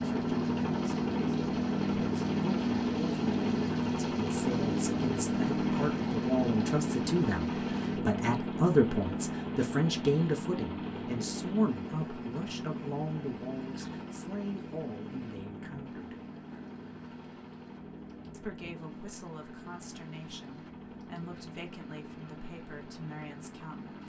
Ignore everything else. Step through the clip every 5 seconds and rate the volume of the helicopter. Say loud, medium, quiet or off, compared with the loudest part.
loud, loud, medium, quiet, quiet.